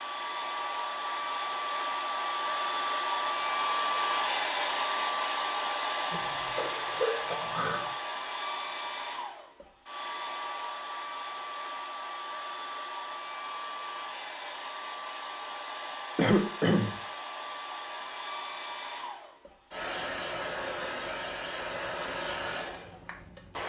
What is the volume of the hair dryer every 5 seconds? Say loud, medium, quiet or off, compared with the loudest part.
loud, loud, medium, medium, medium.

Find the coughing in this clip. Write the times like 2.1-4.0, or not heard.
6.1-7.9, 16.1-16.9.